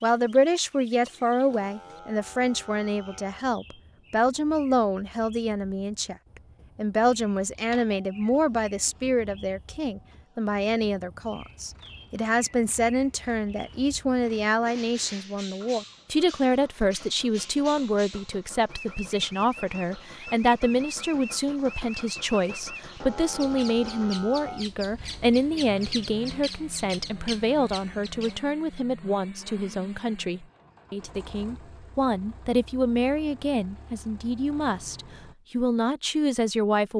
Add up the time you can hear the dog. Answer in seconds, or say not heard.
not heard.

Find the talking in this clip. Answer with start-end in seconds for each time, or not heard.
0.0-6.2, 6.8-36.9.